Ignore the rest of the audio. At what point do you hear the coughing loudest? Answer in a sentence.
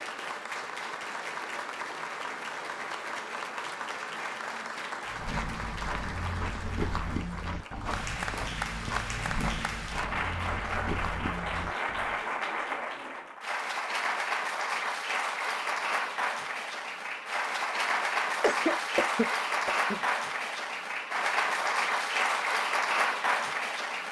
The volume of the coughing peaks at 19 seconds.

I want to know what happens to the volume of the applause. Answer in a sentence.
The loudness of the applause goes up.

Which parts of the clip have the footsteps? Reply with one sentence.
The footsteps can be heard from 5.0 to 12.2 s.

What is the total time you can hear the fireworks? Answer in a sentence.
You can't hear the fireworks here.